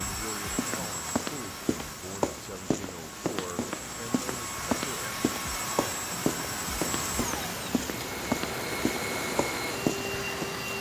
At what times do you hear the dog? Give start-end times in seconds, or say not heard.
not heard.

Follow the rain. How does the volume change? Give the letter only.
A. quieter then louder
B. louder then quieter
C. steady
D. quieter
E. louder
E.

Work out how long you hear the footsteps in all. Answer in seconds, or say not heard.
10 s.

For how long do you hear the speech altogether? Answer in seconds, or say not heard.
5 s.